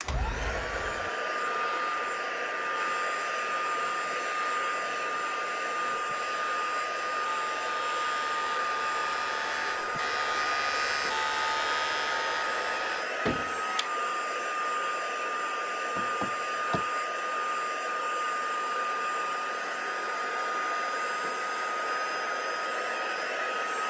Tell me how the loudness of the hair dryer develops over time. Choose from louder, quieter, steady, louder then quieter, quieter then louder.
steady.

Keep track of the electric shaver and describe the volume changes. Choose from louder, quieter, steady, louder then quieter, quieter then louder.
louder.